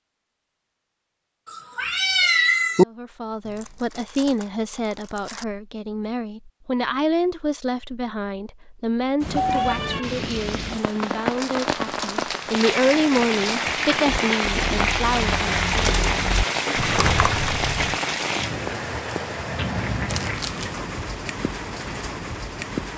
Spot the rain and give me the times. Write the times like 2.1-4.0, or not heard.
9.2-22.9.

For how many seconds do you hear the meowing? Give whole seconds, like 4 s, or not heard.
3 s.